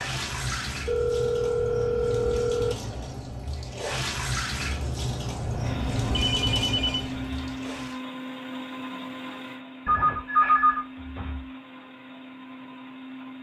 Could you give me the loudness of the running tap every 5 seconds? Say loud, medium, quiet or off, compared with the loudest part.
loud, loud, off.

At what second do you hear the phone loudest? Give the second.
11 s.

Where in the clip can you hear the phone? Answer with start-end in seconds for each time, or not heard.
0.8-2.8, 6.1-7.2, 9.8-11.4.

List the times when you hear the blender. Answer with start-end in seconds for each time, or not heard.
5.5-13.3.